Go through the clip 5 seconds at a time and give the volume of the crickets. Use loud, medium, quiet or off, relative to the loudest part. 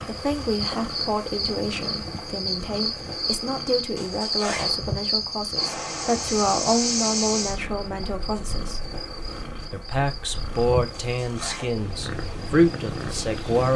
loud, loud, quiet.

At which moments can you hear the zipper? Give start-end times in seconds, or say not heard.
4.0-4.8, 10.9-11.8.